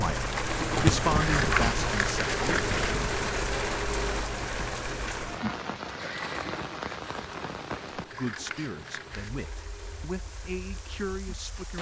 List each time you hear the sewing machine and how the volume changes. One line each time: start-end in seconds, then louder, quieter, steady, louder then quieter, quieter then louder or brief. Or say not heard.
0.1-11.7 quieter.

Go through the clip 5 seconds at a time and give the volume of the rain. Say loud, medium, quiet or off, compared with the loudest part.
loud, medium, quiet.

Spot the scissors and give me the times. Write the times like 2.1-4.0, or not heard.
1.1-3.0, 8.1-9.4.